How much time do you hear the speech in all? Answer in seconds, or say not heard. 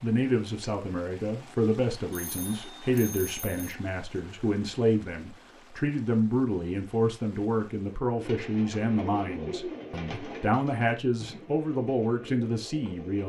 13 s.